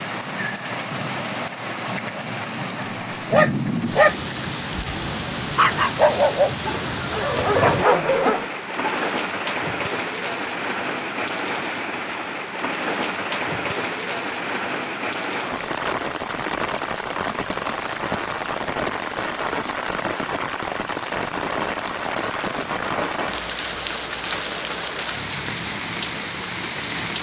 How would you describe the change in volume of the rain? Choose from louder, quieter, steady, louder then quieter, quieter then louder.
steady.